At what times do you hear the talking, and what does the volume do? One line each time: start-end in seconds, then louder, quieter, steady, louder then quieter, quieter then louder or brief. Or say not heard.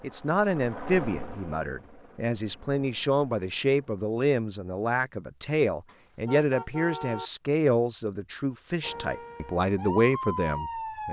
0.0-11.0 steady.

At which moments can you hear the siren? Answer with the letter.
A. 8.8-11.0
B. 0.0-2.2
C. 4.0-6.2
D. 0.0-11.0
A.